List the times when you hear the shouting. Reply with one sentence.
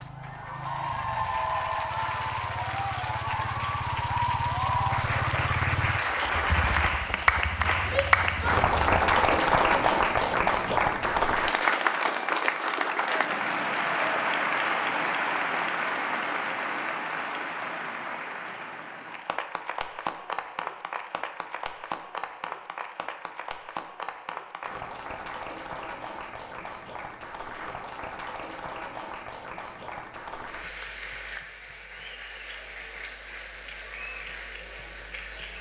You can hear the shouting from 7.8 to 8.6 s.